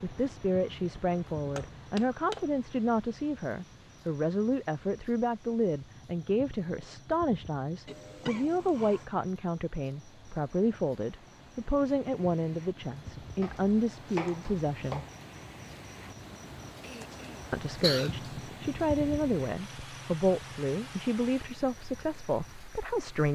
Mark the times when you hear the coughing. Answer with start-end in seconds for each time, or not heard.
7.8-9.1, 16.8-18.3.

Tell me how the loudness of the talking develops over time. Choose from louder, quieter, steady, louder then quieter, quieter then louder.
steady.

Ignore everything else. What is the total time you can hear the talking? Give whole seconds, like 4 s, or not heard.
21 s.